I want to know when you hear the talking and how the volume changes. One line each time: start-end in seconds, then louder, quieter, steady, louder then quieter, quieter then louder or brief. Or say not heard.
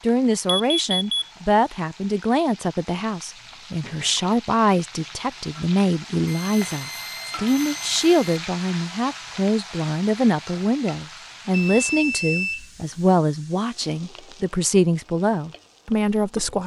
0.0-16.6 steady.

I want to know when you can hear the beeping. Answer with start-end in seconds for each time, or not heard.
0.5-1.3, 6.2-8.3, 11.5-13.1.